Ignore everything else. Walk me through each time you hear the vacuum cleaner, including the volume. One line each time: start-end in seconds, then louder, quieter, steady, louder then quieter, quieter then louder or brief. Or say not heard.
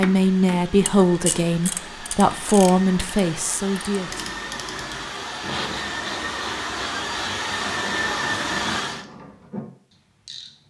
0.0-9.1 louder.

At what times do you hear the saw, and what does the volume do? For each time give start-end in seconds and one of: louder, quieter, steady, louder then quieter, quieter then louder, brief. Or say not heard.
not heard.